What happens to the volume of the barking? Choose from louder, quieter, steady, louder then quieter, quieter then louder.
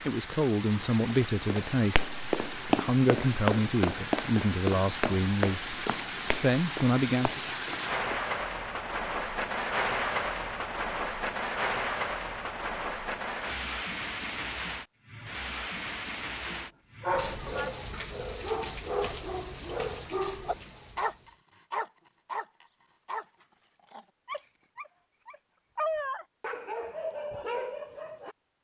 quieter then louder.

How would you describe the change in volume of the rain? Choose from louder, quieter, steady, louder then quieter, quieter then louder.
louder then quieter.